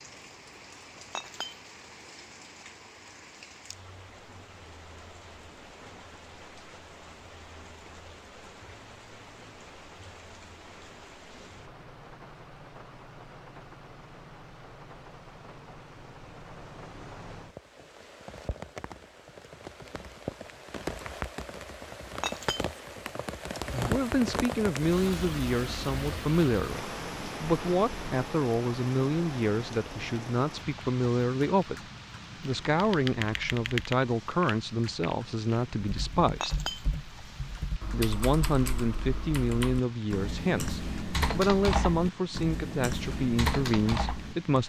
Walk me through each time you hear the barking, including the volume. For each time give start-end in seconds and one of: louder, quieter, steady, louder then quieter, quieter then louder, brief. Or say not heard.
not heard.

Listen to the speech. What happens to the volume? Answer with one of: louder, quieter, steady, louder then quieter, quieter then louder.
steady.